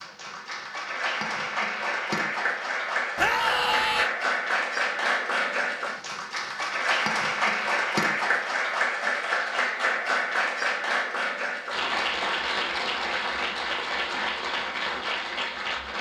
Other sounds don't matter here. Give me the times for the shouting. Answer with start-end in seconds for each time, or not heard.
3.1-4.1.